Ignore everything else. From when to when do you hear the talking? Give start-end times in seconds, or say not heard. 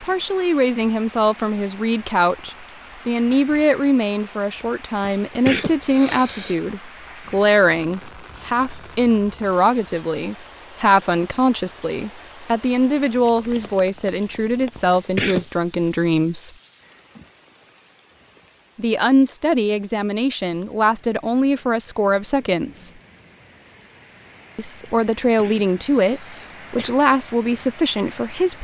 0.0-16.6, 18.8-22.9, 24.6-28.5.